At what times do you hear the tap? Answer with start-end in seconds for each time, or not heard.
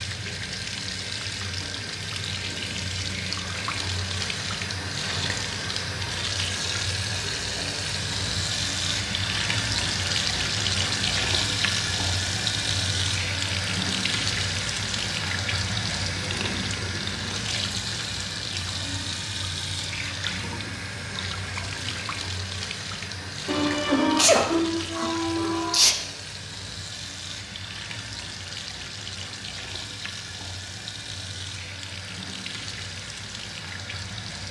0.0-34.4.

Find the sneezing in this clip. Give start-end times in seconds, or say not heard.
23.4-25.9.